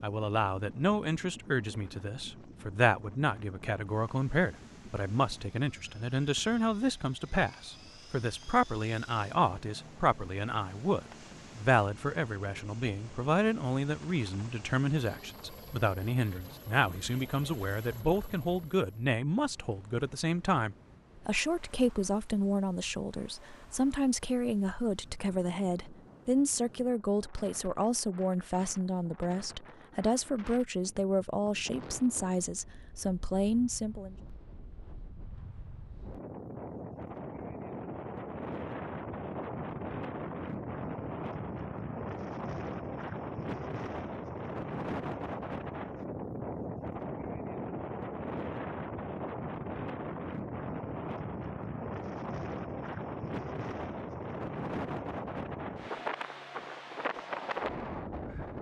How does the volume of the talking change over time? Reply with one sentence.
The loudness of the talking stays about the same.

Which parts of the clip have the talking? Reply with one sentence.
You can hear the talking from 0.0 to 34.1 s.